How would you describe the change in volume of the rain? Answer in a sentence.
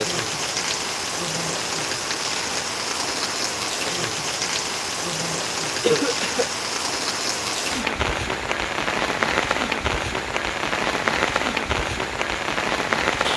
The loudness of the rain stays about the same.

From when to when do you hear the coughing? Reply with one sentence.
The coughing can be heard from 5.8 to 6.5 s.